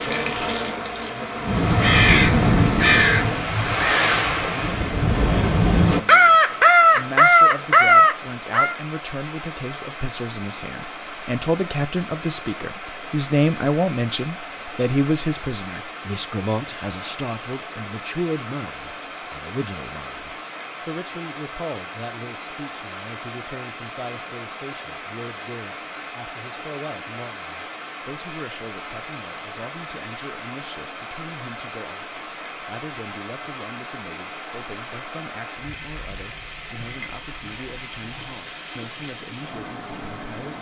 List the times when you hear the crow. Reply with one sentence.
You can hear the crow from 1.4 to 8.8 s.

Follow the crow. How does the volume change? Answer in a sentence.
The loudness of the crow goes down, then up.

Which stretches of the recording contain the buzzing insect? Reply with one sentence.
You can hear the buzzing insect from 0.0 to 3.5 s.